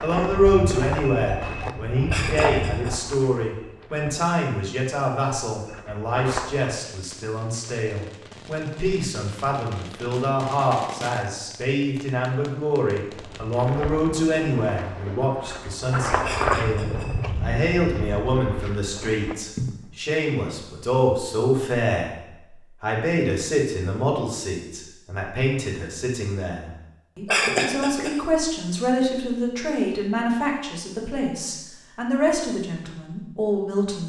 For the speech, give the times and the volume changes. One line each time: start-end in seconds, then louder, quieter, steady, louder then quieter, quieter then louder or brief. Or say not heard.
0.0-34.0 steady.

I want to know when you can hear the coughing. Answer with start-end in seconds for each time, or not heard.
2.0-3.0, 16.2-17.1, 27.2-28.1.